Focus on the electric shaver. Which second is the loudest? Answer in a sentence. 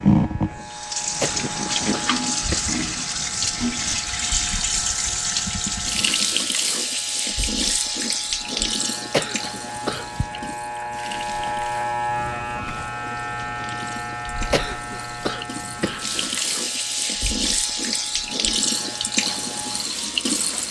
The volume of the electric shaver peaks at 12 seconds.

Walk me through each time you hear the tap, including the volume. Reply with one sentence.
You can hear the tap from 0.0 to 20.6 s, getting quieter then louder.